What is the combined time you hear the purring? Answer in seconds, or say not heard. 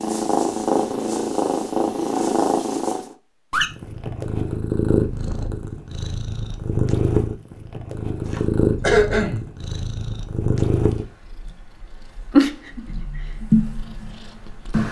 15 s.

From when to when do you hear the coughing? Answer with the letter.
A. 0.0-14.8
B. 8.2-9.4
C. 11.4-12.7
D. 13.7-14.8
B.